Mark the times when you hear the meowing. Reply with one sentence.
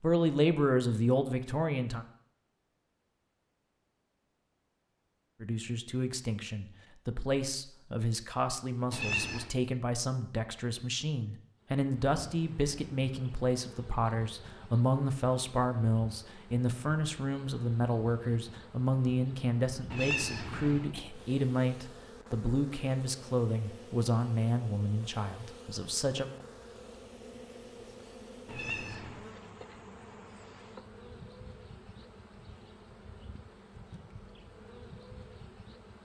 The meowing can be heard from 8.9 to 9.6 s, from 19.9 to 20.9 s and from 28.4 to 29.2 s.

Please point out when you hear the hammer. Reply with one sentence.
The hammer can't be heard in this clip.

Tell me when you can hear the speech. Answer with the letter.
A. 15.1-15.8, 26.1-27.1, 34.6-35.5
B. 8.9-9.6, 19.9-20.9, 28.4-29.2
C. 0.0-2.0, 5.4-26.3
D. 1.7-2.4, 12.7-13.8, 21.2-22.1
C.